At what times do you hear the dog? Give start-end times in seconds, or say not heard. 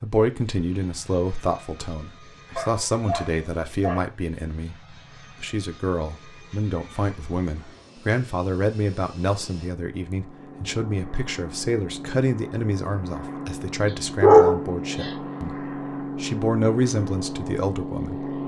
2.5-4.0, 14.2-15.1.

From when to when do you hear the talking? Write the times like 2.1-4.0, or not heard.
0.0-4.8, 5.4-15.6, 16.1-18.2.